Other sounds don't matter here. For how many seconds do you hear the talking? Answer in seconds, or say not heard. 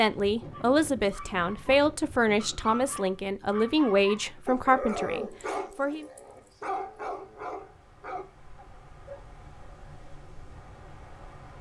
6 s.